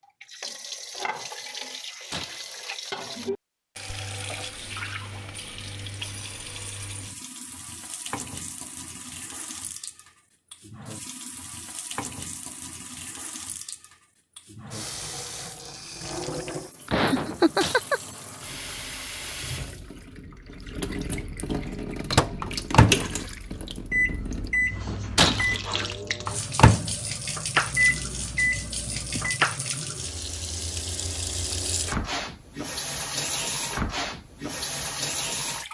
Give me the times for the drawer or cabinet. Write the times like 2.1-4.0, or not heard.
not heard.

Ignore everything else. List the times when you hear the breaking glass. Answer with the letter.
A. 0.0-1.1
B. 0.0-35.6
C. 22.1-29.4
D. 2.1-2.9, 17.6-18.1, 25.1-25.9
D.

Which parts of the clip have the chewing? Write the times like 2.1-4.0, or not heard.
not heard.